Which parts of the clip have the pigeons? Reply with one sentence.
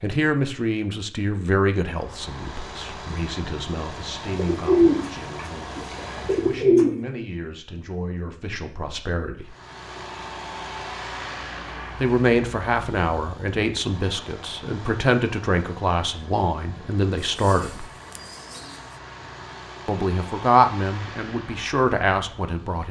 You can hear the pigeons from 4.3 to 7.0 s and from 17.2 to 18.9 s.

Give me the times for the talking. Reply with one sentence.
The talking can be heard from 0.0 to 9.6 s, from 12.0 to 17.9 s and from 19.9 to 22.8 s.